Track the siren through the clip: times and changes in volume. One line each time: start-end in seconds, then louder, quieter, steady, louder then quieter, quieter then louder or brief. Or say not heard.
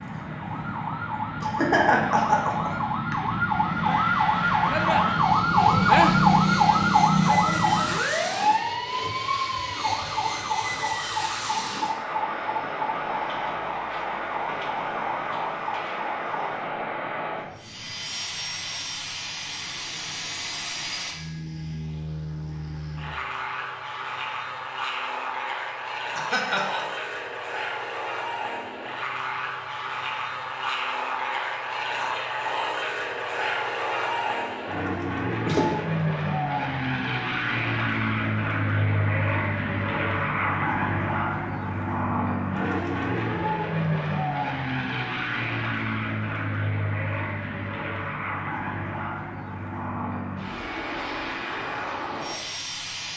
0.0-16.8 louder then quieter.